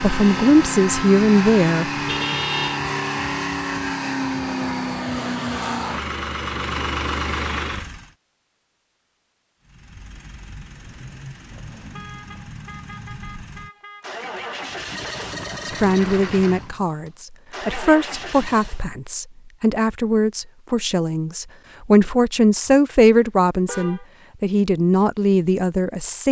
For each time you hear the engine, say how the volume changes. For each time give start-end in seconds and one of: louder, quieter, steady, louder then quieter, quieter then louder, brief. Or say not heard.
0.0-8.1 steady
9.6-18.9 louder.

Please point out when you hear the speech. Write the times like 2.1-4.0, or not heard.
0.0-1.9, 15.7-26.2.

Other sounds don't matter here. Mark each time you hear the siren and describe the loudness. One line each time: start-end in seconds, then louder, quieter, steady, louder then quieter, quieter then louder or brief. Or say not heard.
not heard.